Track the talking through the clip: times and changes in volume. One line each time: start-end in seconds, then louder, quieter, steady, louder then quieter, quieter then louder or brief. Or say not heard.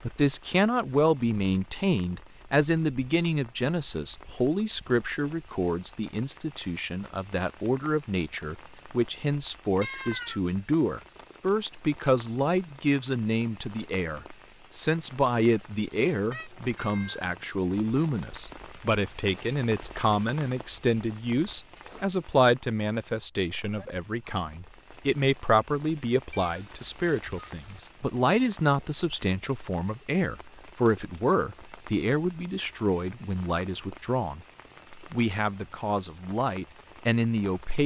0.0-37.8 steady.